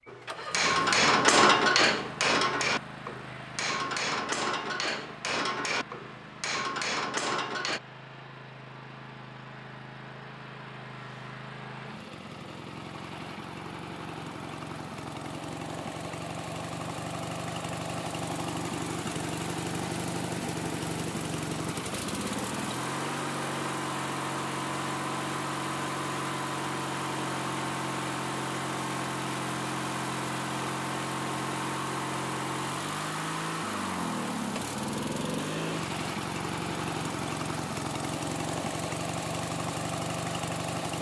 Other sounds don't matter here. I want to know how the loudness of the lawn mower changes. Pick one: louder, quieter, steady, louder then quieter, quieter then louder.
louder.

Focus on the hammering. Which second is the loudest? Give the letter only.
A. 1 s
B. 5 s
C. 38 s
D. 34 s
A.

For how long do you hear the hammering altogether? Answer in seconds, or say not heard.
8 s.